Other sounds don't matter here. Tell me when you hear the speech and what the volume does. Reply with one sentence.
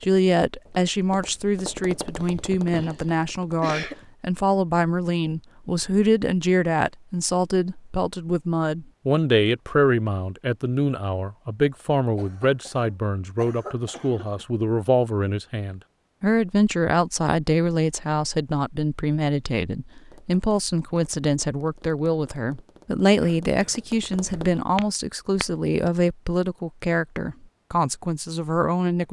The speech can be heard from 0.0 to 29.0 s, at a steady volume.